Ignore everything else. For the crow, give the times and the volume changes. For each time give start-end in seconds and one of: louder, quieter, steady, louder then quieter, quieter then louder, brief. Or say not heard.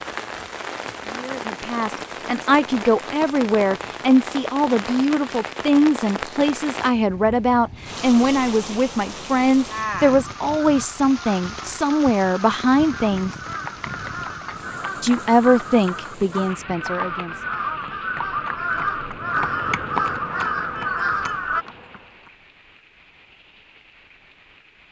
10.2-21.6 louder.